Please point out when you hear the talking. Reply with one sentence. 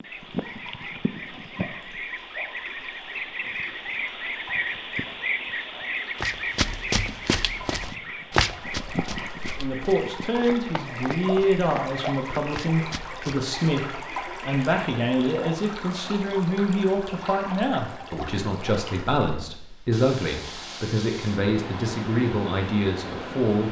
The talking can be heard from 9.6 to 23.6 s.